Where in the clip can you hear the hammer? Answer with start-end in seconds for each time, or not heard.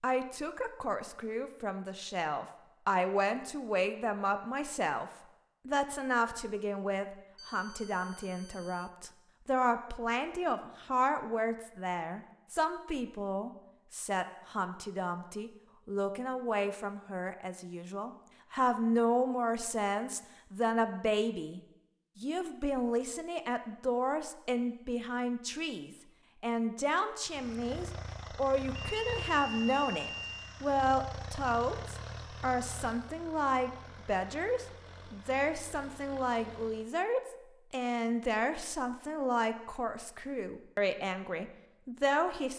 not heard.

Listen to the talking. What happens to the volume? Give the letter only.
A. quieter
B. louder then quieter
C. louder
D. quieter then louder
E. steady
E.